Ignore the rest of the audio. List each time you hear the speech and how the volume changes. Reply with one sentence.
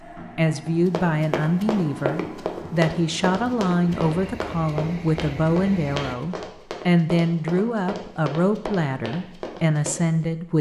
The speech can be heard from 0.3 to 10.5 s, at a steady volume.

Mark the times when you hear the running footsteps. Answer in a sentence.
You can hear the running footsteps from 0.7 to 10.2 s.